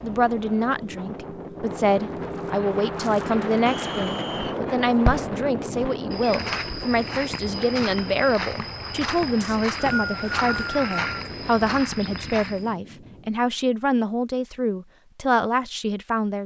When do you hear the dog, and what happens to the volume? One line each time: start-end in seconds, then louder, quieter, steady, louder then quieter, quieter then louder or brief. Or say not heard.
not heard.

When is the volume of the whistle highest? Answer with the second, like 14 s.
10 s.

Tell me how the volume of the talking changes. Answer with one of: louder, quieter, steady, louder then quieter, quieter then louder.
steady.